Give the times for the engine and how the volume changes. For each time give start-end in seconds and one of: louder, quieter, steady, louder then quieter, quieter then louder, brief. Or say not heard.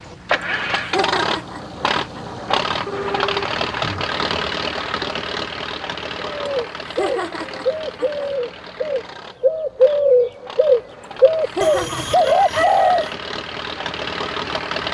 0.0-14.8 quieter then louder.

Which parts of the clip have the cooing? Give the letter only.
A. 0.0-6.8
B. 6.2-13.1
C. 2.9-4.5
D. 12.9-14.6
B.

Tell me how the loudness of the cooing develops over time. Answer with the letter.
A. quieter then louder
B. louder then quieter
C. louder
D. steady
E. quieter
C.